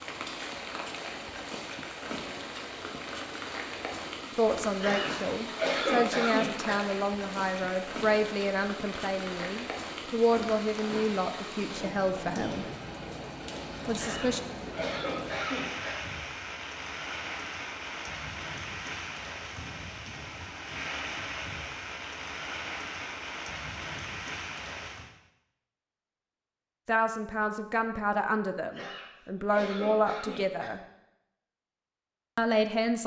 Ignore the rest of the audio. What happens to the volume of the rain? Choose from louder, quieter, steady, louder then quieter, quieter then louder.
steady.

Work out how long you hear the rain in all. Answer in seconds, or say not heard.
25 s.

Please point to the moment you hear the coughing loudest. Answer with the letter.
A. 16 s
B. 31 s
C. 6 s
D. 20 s
C.